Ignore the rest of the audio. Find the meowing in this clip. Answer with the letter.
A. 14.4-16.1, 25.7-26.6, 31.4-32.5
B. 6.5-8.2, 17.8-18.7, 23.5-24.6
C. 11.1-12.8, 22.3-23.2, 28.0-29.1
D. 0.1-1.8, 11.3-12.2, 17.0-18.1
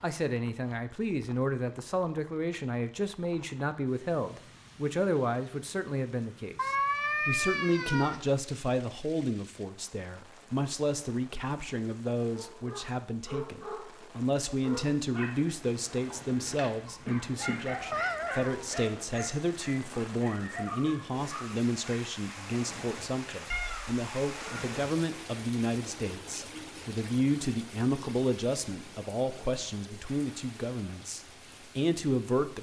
B.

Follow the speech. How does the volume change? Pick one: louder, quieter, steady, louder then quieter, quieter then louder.
steady.